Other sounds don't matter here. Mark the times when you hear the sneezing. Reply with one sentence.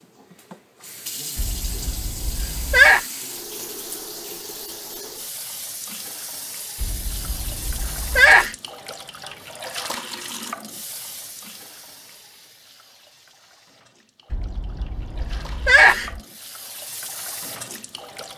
You can hear the sneezing from 1.4 to 3.0 s, from 6.8 to 8.6 s and from 14.3 to 16.2 s.